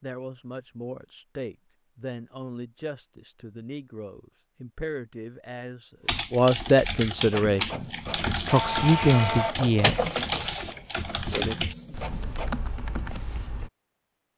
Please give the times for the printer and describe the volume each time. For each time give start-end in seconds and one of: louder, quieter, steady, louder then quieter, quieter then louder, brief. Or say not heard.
7.2-12.6 louder then quieter.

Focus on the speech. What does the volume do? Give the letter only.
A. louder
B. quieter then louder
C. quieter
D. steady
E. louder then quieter
A.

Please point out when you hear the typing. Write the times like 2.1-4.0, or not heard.
6.0-13.7.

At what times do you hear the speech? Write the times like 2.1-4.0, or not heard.
0.0-10.1.